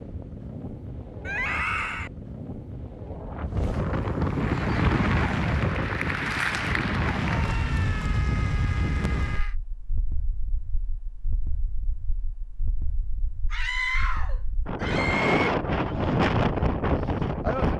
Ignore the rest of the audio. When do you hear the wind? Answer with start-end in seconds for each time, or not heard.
0.0-17.7.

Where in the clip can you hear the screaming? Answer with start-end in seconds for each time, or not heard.
1.2-2.1, 7.2-9.6, 13.5-15.5.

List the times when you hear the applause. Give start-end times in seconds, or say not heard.
4.2-7.7.